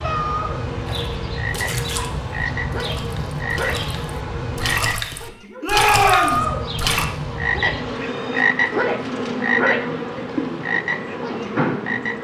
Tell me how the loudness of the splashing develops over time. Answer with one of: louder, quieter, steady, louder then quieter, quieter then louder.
quieter then louder.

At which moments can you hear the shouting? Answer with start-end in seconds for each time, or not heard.
5.6-6.5.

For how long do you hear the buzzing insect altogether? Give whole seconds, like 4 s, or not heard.
11 s.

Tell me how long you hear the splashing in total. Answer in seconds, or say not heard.
6 s.